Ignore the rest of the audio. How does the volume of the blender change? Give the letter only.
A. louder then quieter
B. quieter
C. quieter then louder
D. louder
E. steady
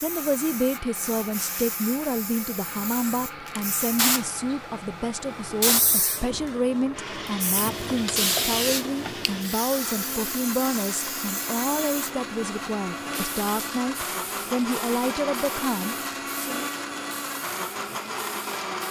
D.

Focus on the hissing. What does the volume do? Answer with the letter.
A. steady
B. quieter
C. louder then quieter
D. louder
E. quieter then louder
C.